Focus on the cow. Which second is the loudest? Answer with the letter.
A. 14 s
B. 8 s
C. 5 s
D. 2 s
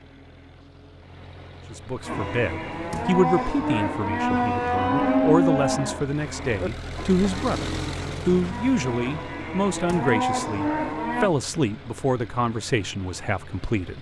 C.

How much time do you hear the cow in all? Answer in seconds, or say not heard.
9 s.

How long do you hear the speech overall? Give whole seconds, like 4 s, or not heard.
12 s.